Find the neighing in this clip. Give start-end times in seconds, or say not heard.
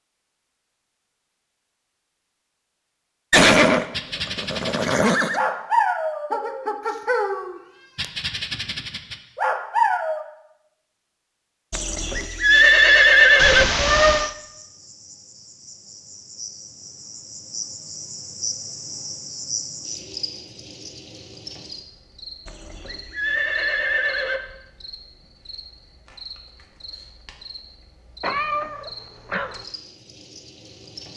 3.3-5.4, 11.7-13.7, 22.4-24.4.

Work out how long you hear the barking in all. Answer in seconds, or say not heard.
6 s.